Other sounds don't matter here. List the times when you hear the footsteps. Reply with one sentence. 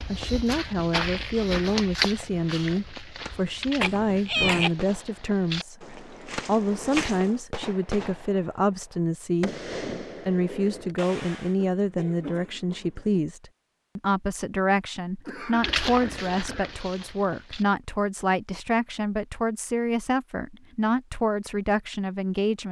You can hear the footsteps from 0.0 to 7.4 s and from 15.6 to 17.6 s.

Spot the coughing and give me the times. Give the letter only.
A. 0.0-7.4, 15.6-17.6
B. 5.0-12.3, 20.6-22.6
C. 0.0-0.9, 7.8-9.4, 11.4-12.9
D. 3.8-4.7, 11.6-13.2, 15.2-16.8
D.